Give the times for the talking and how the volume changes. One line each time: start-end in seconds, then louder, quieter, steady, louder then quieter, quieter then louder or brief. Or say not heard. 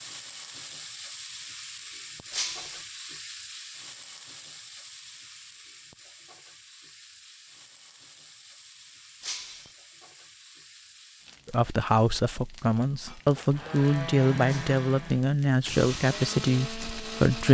11.4-17.4 steady.